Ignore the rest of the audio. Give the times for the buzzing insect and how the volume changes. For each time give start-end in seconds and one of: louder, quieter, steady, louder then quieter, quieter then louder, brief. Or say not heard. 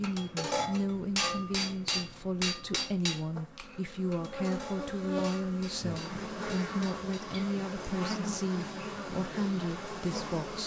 0.1-10.6 louder.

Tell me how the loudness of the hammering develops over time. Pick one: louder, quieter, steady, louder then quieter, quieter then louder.
quieter.